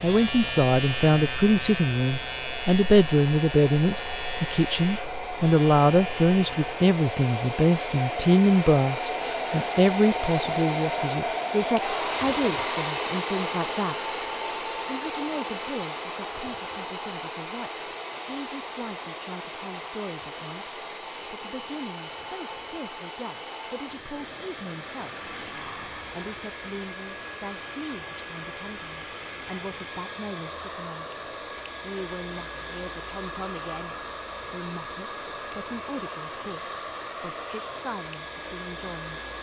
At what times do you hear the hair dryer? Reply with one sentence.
The hair dryer can be heard from 0.0 to 39.3 s.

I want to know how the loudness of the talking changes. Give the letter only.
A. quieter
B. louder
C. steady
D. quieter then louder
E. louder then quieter
A.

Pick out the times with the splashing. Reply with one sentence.
You can't hear the splashing here.